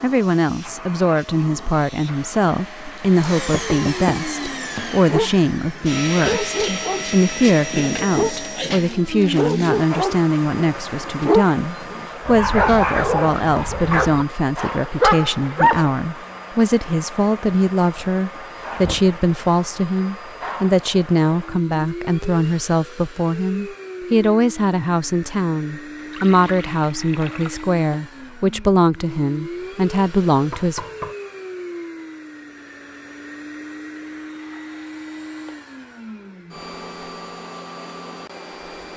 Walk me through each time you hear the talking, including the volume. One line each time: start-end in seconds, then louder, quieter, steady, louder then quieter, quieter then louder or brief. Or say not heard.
0.0-30.9 steady.